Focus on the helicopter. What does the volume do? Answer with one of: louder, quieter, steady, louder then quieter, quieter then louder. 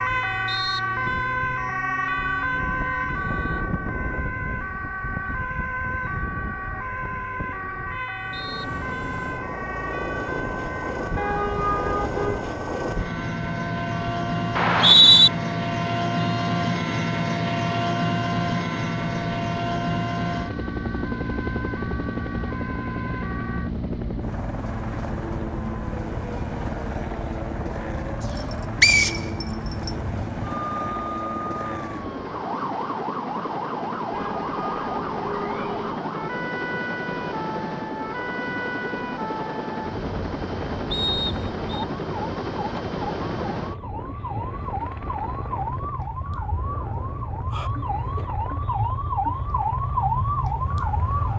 quieter.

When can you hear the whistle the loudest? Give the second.
15 s.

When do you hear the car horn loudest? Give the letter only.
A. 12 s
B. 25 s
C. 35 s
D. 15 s
A.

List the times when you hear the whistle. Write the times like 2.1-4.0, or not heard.
14.6-15.3, 28.8-29.9, 40.9-41.9.